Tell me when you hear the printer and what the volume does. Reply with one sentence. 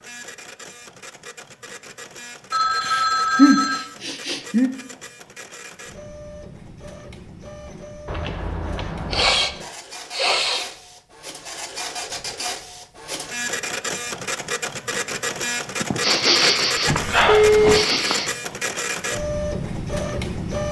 The printer can be heard from 0.0 to 20.6 s, getting louder.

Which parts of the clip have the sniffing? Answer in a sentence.
You can hear the sniffing from 2.8 to 4.7 s, from 9.1 to 10.7 s and from 15.8 to 18.3 s.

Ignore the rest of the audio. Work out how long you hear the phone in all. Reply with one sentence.
You can hear the phone for 4 seconds altogether.